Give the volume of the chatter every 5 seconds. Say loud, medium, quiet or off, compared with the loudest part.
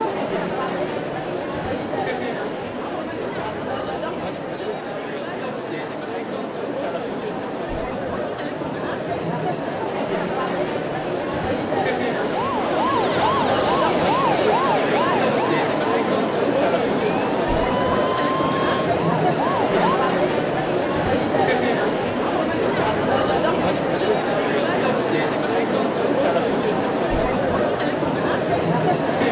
medium, medium, loud, loud, loud, loud.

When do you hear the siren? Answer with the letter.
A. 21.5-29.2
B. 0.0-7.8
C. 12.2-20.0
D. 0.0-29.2
C.